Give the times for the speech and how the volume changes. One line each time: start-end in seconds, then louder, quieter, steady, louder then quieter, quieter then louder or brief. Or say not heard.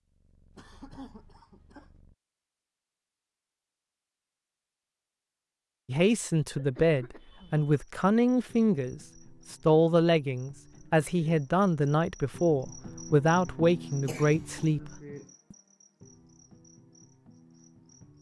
5.8-14.9 steady.